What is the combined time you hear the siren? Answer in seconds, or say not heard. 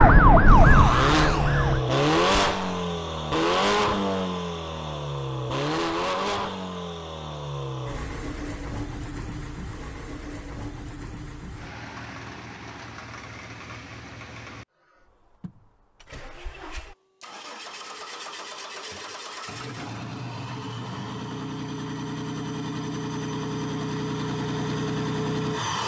2 s.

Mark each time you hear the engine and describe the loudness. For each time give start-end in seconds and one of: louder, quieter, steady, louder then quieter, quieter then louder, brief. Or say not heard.
0.0-25.8 quieter then louder.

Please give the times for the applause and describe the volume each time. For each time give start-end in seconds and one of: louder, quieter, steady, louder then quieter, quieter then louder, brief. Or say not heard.
not heard.